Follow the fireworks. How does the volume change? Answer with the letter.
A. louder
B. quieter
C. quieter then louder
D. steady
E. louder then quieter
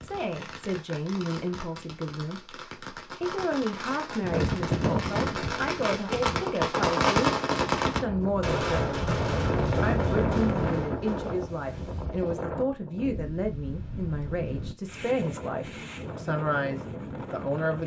E.